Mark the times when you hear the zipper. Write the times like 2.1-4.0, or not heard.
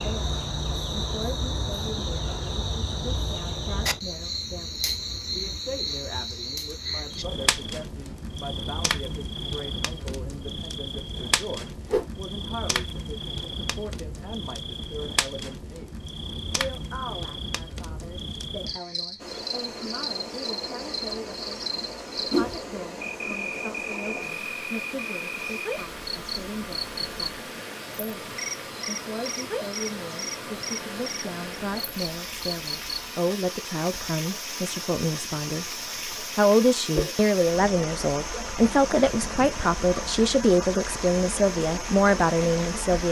not heard.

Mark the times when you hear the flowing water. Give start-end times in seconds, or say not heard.
19.1-43.0.